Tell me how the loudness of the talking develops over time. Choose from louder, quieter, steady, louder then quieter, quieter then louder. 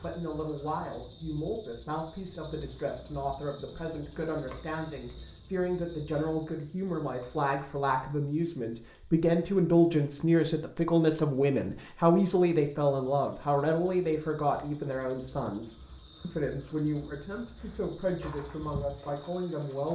louder then quieter.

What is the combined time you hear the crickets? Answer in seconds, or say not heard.
20 s.